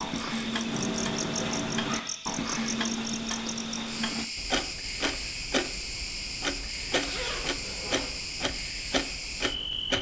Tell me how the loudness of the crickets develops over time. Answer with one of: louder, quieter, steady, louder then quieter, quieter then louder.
steady.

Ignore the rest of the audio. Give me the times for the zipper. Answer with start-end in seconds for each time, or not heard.
0.7-2.1, 7.0-8.1.